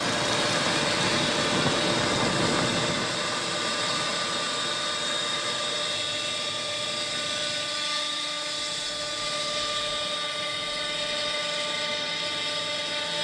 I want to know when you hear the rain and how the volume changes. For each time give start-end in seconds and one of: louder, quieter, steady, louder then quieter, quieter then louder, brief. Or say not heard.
0.0-12.9 quieter.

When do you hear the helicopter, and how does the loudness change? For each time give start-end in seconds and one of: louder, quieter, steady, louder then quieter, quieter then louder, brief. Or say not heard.
0.0-13.1 steady.